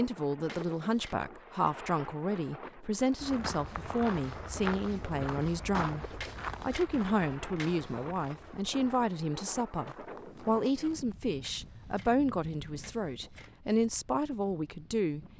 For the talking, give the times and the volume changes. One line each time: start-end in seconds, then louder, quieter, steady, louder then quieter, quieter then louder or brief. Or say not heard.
0.0-15.2 steady.